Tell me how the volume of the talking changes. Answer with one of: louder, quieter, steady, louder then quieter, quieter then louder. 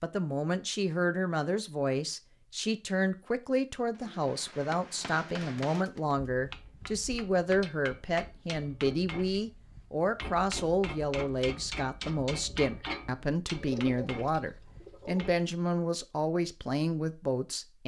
steady.